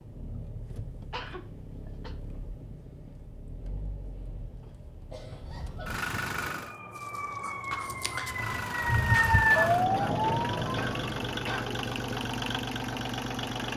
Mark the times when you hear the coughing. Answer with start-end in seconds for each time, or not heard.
1.1-2.1, 5.1-6.0, 9.3-11.8.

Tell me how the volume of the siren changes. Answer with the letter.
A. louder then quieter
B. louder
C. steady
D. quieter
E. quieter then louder
A.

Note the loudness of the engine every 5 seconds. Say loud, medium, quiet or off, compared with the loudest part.
quiet, loud, loud.